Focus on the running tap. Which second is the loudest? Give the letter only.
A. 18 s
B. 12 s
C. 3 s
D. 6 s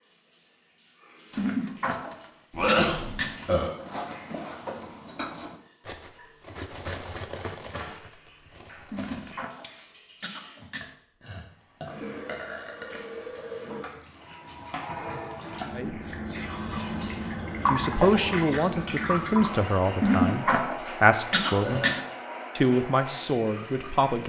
A.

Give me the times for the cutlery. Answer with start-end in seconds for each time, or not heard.
1.3-9.8.